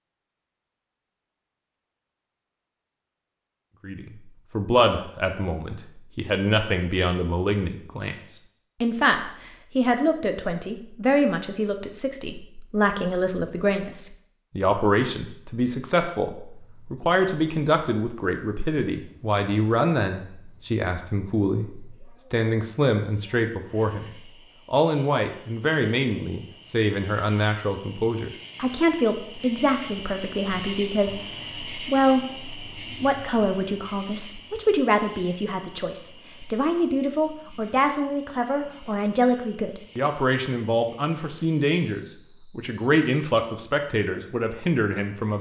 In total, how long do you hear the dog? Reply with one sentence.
You can't hear the dog here.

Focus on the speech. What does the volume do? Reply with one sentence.
The volume of the speech stays about the same.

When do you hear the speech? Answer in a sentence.
The speech can be heard from 3.9 to 45.3 s.